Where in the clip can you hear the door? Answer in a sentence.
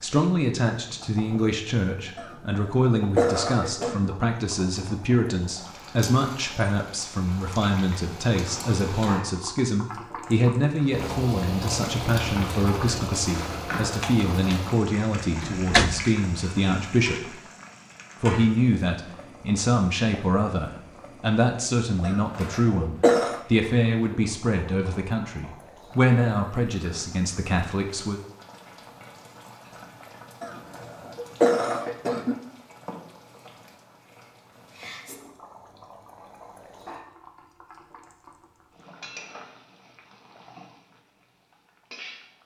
You can hear the door from 15.4 to 16.1 s.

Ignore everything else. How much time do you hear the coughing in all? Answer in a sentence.
The coughing can be heard for 5 seconds in total.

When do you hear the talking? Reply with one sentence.
The talking can be heard from 0.0 to 17.4 s and from 18.2 to 28.2 s.